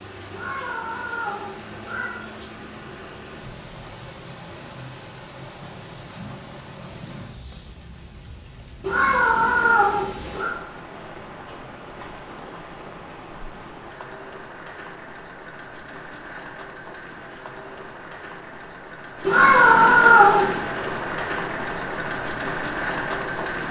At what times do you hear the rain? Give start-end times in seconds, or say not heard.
0.0-23.6.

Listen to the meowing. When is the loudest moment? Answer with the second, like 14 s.
20 s.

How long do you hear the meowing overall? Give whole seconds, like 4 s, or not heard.
5 s.